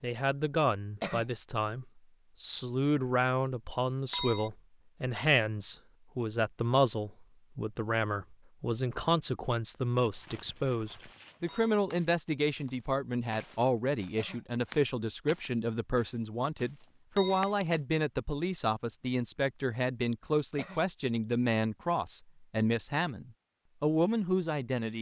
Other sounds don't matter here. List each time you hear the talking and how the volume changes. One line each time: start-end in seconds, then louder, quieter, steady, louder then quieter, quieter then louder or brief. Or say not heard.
0.0-24.9 steady.